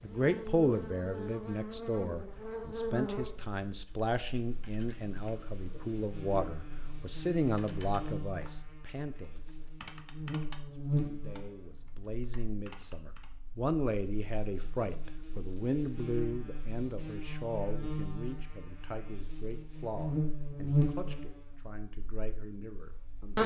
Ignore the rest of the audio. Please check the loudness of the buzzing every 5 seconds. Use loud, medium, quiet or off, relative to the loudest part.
medium, quiet, medium, medium, loud.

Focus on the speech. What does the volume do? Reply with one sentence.
The volume of the speech goes down.